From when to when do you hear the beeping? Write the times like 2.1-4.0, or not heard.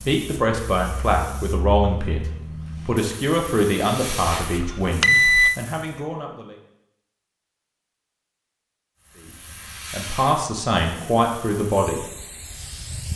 4.4-5.6.